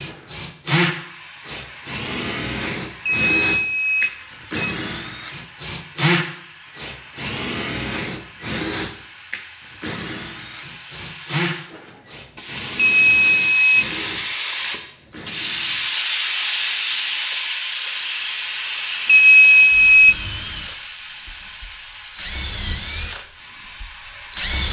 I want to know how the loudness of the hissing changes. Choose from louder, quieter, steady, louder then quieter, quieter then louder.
louder then quieter.